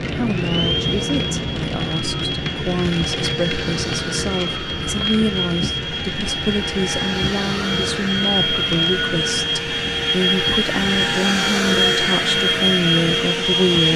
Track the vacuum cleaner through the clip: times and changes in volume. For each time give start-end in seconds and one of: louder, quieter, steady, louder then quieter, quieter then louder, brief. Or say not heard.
0.0-13.9 louder.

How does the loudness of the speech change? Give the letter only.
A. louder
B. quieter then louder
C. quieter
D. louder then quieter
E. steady
E.